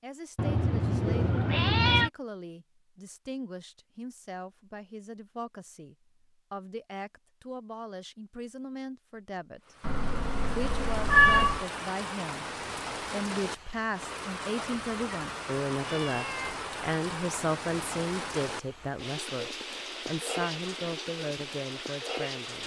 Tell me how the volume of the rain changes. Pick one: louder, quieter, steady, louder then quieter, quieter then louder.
steady.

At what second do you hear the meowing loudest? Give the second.
11 s.